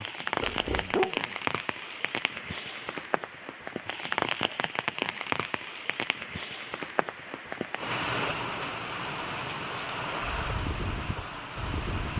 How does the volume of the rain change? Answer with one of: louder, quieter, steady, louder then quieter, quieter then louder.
steady.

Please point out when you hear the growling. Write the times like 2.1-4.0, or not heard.
0.4-1.4.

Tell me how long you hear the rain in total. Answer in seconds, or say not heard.
12 s.